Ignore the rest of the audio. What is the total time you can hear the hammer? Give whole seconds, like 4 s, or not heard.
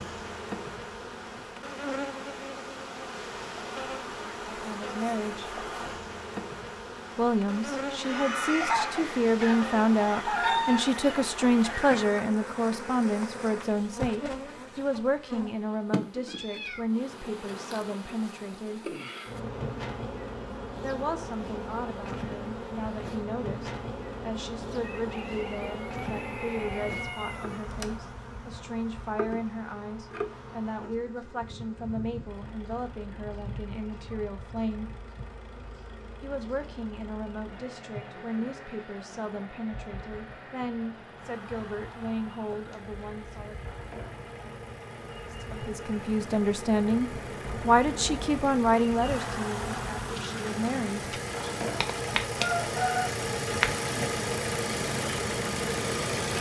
not heard.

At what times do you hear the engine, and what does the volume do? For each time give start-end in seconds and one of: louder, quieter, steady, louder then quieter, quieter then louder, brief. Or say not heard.
32.2-56.3 louder.